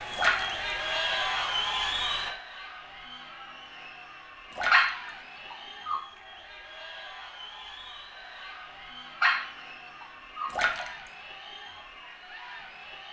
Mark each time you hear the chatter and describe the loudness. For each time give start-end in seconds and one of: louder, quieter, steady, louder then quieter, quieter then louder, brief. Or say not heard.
0.0-13.0 quieter.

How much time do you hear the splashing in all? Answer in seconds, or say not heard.
2 s.